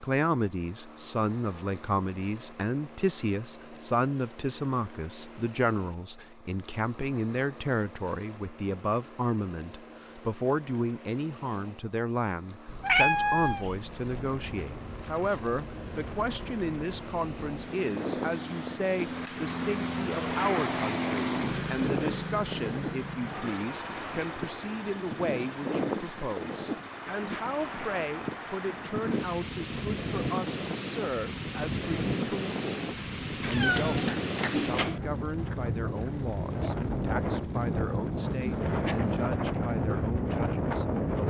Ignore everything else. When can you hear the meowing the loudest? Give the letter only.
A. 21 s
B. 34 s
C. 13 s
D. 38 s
C.